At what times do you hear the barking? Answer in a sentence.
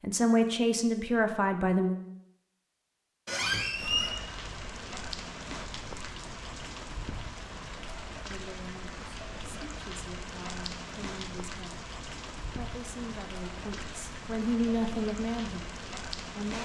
The barking can't be heard in this clip.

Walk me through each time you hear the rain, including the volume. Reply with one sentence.
You can hear the rain from 3.7 to 16.5 s, at a steady volume.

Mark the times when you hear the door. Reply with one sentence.
The door can be heard from 3.2 to 4.2 s.